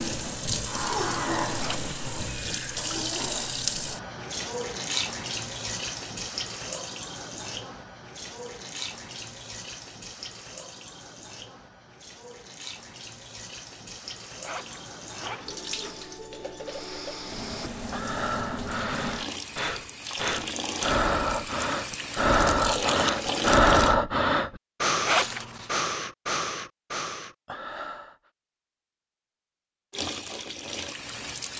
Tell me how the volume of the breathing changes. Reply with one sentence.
The volume of the breathing goes up, then down.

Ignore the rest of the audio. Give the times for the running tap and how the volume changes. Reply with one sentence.
You can hear the running tap from 0.0 to 23.9 s, getting quieter then louder; and briefly from 29.9 to 31.5 s.